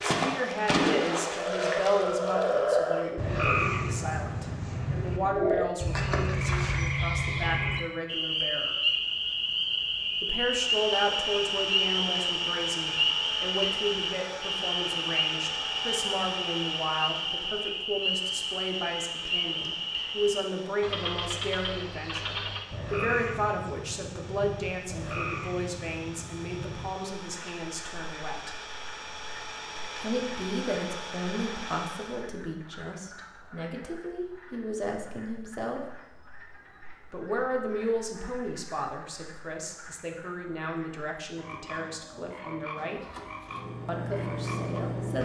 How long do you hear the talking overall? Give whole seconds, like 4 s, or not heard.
40 s.